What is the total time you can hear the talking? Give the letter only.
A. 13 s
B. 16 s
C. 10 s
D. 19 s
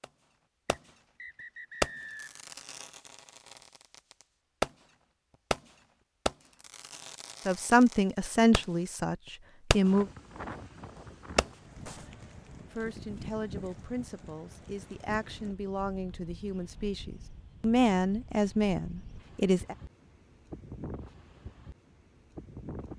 C.